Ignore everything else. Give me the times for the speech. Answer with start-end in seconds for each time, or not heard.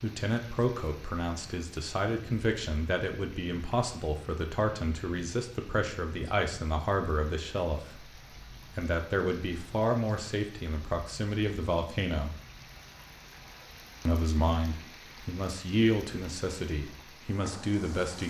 0.0-12.3, 14.1-18.2.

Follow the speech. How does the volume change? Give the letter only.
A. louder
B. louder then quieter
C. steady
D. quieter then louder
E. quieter
C.